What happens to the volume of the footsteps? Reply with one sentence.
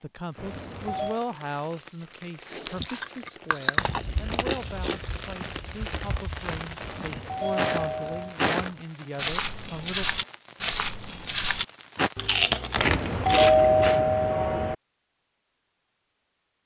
The volume of the footsteps goes up.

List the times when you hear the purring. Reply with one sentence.
You can't hear the purring here.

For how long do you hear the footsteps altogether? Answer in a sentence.
You can hear the footsteps for 8 seconds altogether.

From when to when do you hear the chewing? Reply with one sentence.
You can hear the chewing from 2.5 to 5.0 s and from 12.2 to 14.1 s.